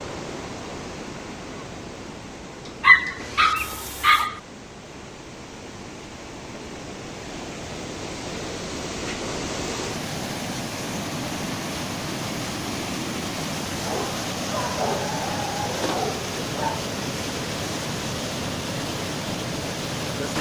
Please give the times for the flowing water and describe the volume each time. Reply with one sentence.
The flowing water can be heard from 0.0 to 20.3 s, getting louder.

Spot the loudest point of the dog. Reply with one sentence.
The volume of the dog peaks at 3 seconds.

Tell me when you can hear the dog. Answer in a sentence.
The dog can be heard from 2.8 to 4.4 s and from 13.8 to 16.8 s.